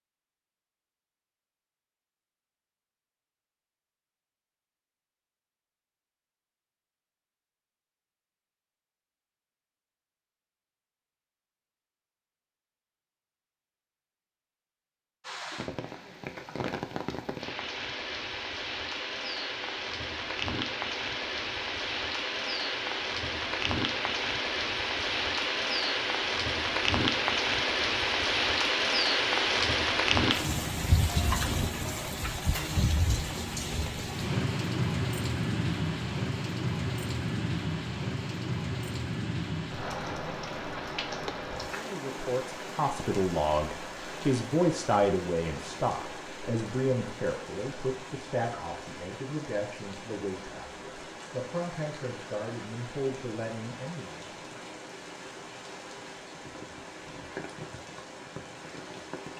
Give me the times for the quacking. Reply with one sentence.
You can't hear the quacking here.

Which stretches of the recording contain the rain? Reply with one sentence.
You can hear the rain from 15.2 to 59.3 s.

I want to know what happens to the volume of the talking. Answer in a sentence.
The volume of the talking goes down.